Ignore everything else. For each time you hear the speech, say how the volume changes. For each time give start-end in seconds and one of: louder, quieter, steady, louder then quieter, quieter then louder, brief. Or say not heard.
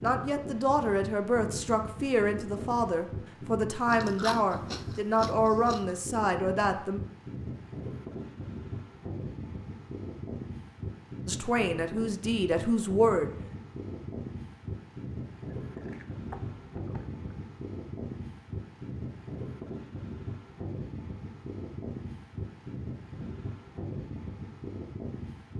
0.0-7.0 steady
11.2-13.3 brief.